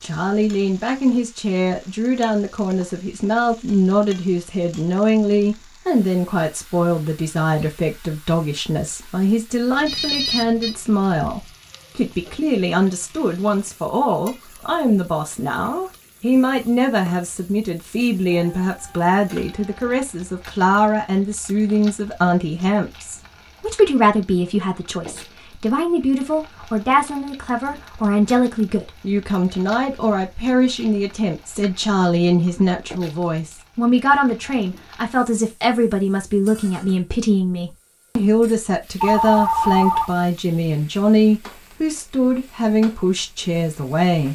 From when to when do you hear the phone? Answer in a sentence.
The phone can be heard from 9.8 to 10.8 s, from 18.3 to 19.9 s and from 39.0 to 40.1 s.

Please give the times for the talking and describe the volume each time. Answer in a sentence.
You can hear the talking from 0.0 to 44.3 s, at a steady volume.